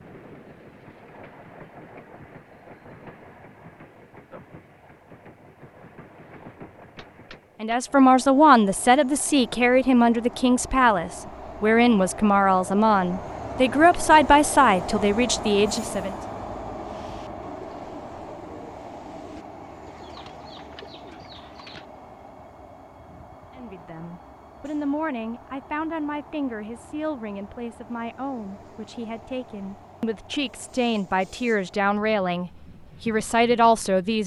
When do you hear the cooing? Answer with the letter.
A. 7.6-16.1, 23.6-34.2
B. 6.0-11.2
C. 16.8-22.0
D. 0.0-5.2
C.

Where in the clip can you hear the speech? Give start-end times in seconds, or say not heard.
7.6-16.1, 23.6-34.2.